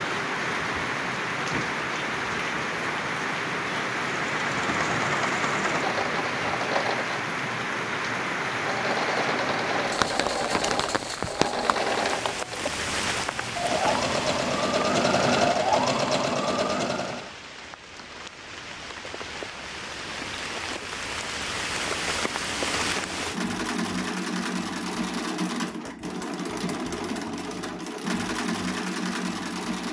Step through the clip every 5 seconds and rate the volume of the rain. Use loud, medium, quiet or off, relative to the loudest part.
loud, loud, loud, medium, loud, off.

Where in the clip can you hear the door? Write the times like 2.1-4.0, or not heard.
not heard.